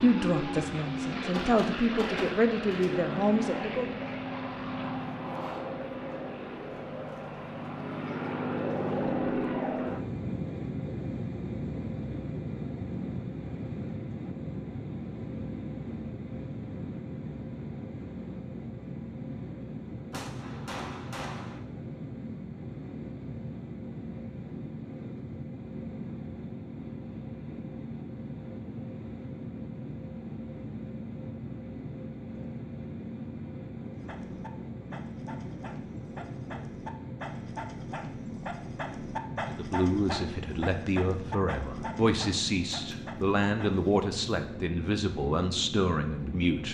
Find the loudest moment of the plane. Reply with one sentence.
The loudest moment of the plane is at 9 seconds.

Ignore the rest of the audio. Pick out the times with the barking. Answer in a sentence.
The barking can be heard from 34.0 to 43.9 s.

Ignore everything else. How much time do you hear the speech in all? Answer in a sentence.
You can hear the speech for 11 seconds altogether.